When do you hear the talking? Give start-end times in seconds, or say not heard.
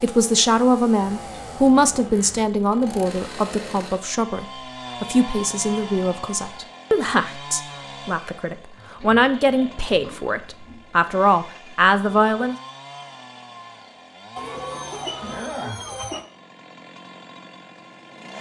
0.0-12.6.